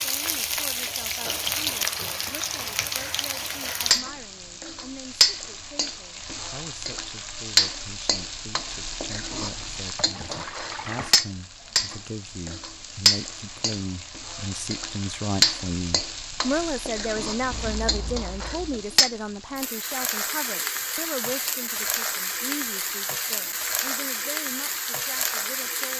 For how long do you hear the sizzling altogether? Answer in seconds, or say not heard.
26 s.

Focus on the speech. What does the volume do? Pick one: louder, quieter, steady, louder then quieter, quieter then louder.
louder then quieter.